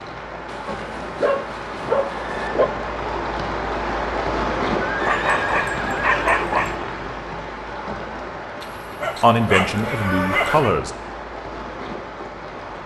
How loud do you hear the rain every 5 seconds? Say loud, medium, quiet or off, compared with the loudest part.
loud, loud, medium.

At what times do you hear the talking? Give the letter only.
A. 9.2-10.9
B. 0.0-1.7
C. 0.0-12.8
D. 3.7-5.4
A.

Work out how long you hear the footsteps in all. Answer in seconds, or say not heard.
not heard.